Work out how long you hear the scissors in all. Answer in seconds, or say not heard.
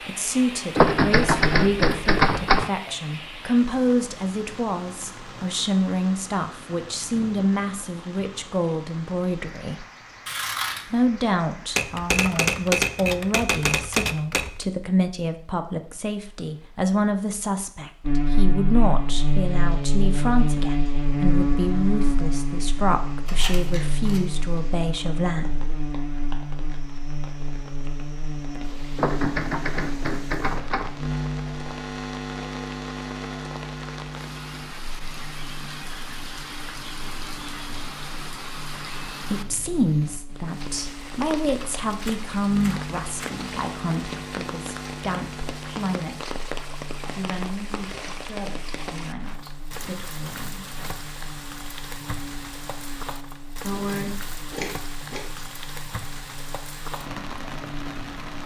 3 s.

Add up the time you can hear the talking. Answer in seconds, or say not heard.
35 s.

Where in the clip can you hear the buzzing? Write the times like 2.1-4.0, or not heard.
18.0-58.4.